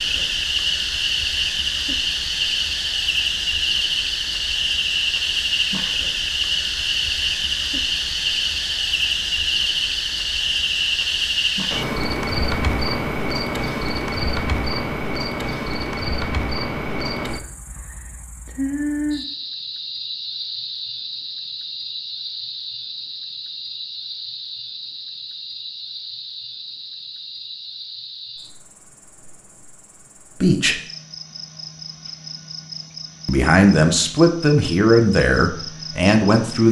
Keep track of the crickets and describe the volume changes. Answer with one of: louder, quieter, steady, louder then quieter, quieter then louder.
quieter.